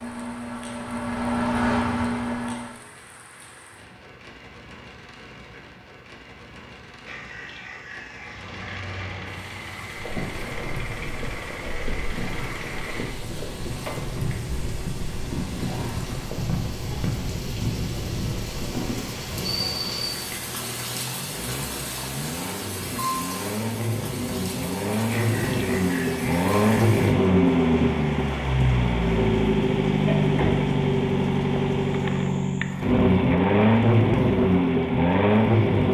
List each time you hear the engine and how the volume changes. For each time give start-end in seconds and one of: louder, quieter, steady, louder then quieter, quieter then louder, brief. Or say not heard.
0.0-2.8 brief
8.2-35.9 louder.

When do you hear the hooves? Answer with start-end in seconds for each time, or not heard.
9.9-19.1.